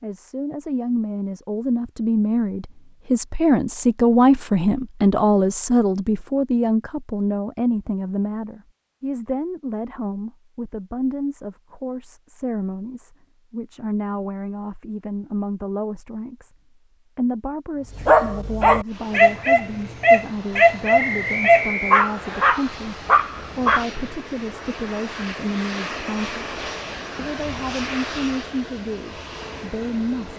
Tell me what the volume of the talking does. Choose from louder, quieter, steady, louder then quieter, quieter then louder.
quieter.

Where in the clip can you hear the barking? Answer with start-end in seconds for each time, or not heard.
17.8-23.9.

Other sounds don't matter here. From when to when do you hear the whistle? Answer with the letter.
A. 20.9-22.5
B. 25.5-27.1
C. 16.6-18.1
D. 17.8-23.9
A.